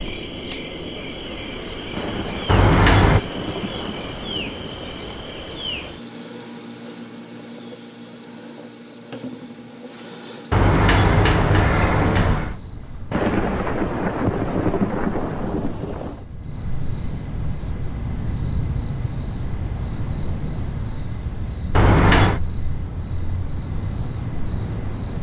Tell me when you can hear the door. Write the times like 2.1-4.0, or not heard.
2.5-3.2, 10.5-12.6, 21.8-22.4.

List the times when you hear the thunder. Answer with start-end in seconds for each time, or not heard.
1.9-5.2, 13.1-16.2.